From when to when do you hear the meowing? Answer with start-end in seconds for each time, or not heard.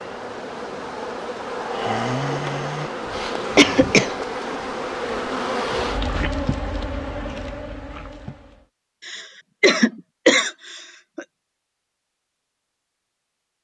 not heard.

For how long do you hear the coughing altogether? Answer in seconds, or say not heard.
3 s.